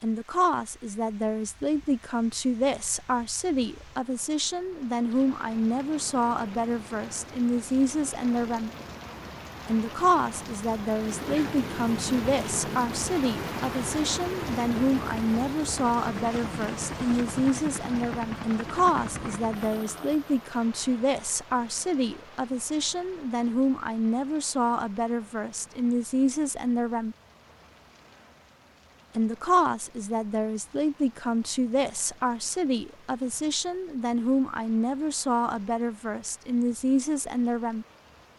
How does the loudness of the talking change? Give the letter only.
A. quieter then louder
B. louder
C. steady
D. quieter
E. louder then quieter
C.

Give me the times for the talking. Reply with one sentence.
The talking can be heard from 0.0 to 8.7 s, from 9.7 to 27.1 s and from 29.1 to 37.9 s.